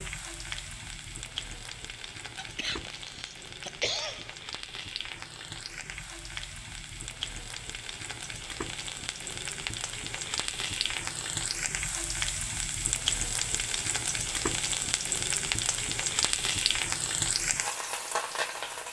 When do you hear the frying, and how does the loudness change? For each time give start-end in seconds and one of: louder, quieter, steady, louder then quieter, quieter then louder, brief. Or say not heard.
0.0-18.8 louder.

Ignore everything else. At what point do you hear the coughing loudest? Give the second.
4 s.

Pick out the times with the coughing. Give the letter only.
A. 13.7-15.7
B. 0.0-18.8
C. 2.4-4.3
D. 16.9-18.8
C.